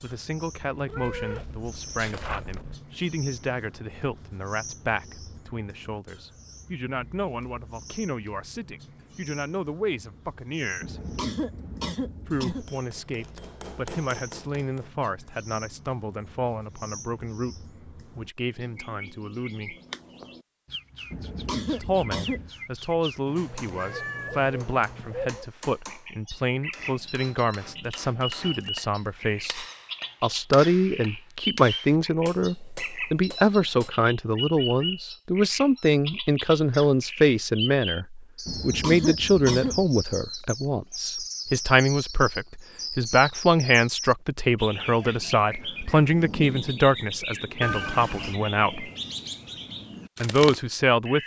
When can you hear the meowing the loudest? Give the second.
48 s.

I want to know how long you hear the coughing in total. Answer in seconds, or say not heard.
5 s.